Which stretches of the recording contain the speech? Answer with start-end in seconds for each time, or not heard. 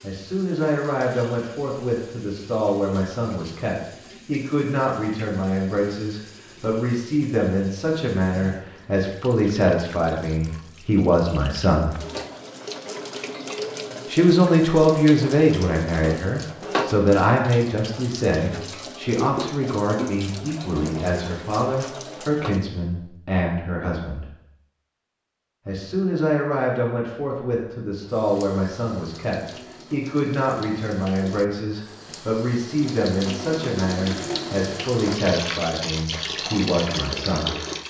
0.0-11.9, 14.1-24.2, 25.6-37.5.